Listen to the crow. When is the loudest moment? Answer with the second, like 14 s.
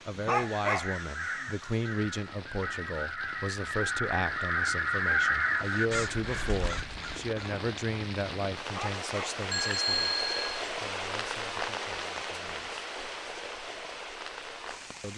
5 s.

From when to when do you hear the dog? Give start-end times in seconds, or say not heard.
0.2-0.9, 8.8-9.4.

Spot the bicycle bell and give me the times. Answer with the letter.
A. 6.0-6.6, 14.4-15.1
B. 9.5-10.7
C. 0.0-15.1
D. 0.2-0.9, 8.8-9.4
B.